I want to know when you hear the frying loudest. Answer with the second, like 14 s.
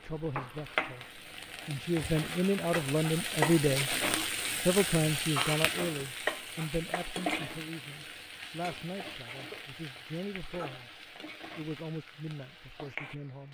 4 s.